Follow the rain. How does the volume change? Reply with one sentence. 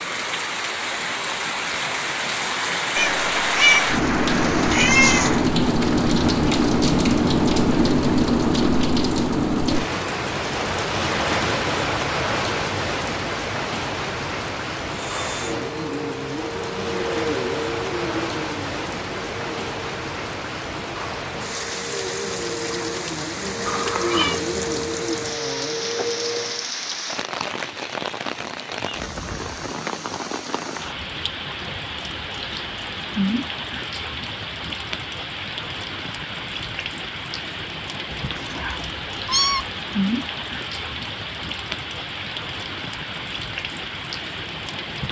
The loudness of the rain goes down.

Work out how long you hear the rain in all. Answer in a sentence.
You can hear the rain for 45 seconds altogether.